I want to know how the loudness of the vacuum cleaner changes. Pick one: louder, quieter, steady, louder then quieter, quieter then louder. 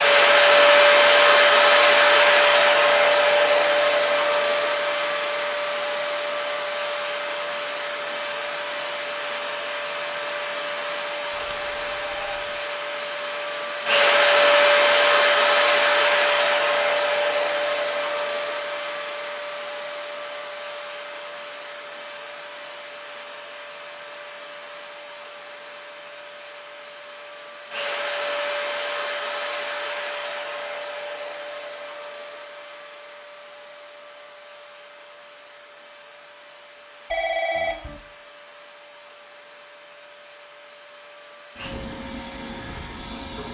quieter.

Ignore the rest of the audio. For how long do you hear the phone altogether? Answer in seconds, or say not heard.
2 s.